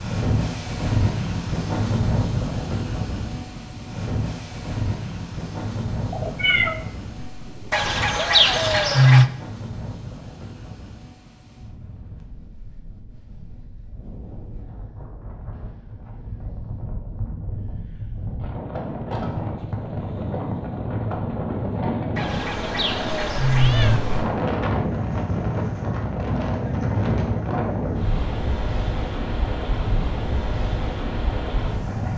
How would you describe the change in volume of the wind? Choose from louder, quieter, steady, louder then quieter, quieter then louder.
quieter then louder.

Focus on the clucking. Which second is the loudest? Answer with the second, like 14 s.
9 s.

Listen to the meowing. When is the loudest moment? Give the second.
7 s.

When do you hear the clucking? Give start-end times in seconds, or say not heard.
7.7-9.3, 22.1-24.0.